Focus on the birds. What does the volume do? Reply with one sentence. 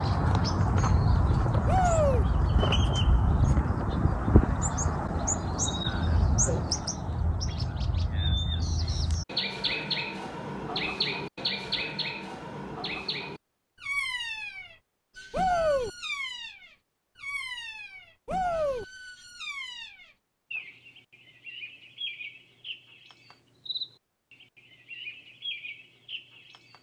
The volume of the birds goes down.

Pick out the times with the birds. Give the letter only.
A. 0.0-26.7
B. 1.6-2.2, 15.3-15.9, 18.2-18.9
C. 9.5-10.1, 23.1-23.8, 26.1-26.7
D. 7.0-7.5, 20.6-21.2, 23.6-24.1
A.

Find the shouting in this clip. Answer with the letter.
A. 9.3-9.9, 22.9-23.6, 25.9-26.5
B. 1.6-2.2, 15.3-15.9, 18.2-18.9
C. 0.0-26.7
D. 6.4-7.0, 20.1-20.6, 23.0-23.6
B.